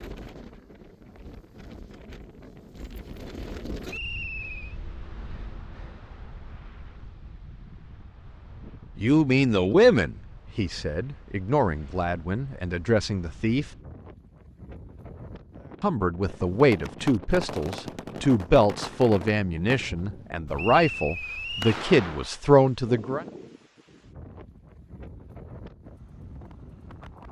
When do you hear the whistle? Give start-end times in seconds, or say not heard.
3.9-4.8, 20.6-21.8.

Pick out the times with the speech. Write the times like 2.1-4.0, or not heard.
8.9-13.7, 15.8-23.2.